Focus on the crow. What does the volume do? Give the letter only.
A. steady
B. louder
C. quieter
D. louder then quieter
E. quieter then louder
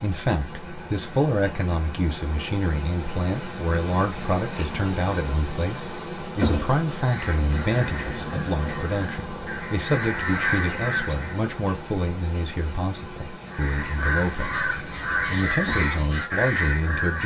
B.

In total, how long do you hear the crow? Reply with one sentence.
You can hear the crow for 8 seconds altogether.